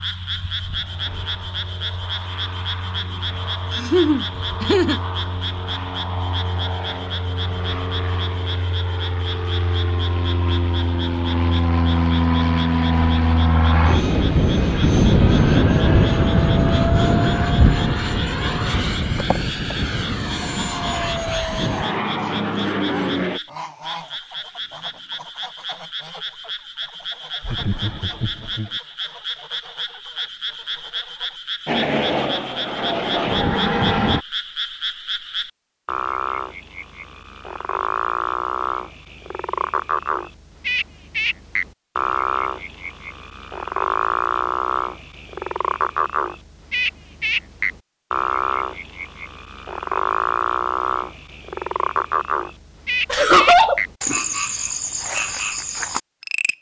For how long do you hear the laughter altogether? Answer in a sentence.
You can hear the laughter for 3 seconds altogether.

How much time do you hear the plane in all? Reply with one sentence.
You can hear the plane for 26 seconds altogether.